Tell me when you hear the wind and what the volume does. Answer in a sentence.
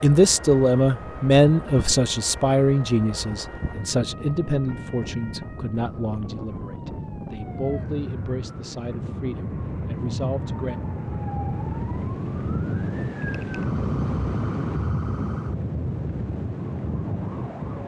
The wind can be heard from 0.0 to 17.8 s, getting louder.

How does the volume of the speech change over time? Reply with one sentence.
The volume of the speech goes down.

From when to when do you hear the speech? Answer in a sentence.
You can hear the speech from 0.0 to 10.8 s.